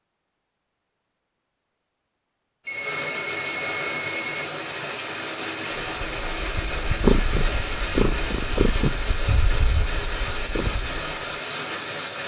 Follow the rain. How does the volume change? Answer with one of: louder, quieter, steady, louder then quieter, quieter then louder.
steady.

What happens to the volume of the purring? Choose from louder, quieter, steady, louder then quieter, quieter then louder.
quieter.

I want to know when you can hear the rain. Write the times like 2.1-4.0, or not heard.
2.6-12.2.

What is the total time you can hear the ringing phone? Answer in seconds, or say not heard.
2 s.